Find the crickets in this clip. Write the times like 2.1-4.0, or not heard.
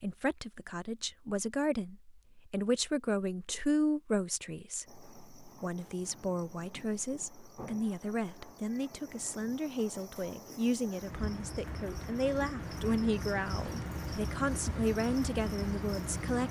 4.8-16.4.